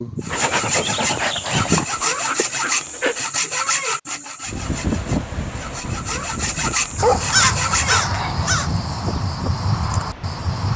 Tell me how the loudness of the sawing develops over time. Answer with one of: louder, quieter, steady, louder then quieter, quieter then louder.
quieter then louder.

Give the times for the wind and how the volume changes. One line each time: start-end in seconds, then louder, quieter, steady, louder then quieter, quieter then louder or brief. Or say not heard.
4.5-10.7 quieter.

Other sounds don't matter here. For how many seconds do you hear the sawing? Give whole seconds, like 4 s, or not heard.
8 s.